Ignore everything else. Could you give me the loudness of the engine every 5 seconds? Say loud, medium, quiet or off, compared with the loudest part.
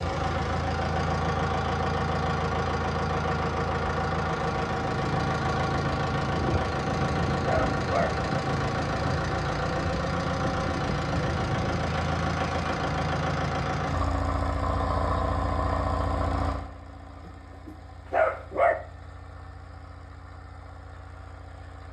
loud, loud, loud, medium, quiet.